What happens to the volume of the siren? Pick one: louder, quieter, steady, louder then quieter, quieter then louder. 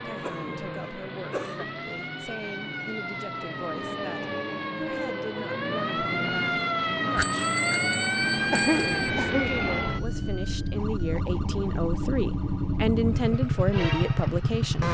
louder then quieter.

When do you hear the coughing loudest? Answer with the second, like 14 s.
9 s.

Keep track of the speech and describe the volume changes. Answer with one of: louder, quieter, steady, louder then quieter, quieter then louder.
louder.